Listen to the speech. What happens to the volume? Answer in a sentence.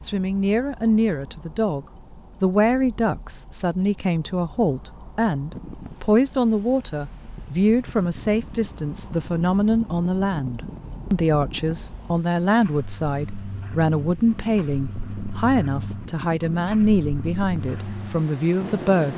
The volume of the speech stays about the same.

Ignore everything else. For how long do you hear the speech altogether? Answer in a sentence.
The speech can be heard for 19 seconds in total.